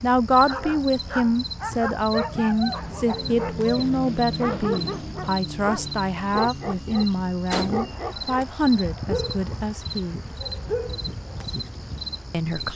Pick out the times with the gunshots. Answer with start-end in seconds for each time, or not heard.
7.5-8.4.